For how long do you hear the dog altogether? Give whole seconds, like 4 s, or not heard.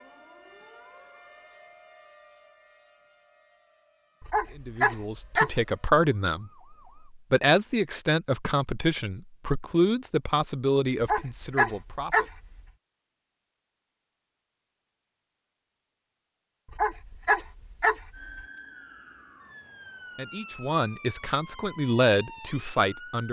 5 s.